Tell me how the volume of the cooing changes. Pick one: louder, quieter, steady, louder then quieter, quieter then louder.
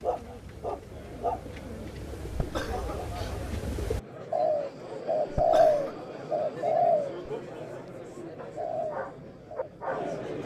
louder then quieter.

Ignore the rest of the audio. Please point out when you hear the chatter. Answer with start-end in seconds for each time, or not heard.
0.1-10.4.